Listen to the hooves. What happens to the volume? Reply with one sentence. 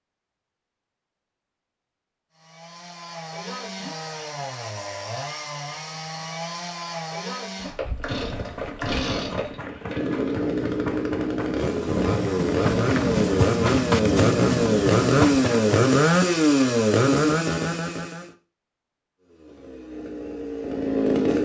The volume of the hooves goes up.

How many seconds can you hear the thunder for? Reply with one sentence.
You can hear the thunder for 3 seconds altogether.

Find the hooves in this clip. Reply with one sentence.
The hooves can be heard from 7.9 to 15.9 s.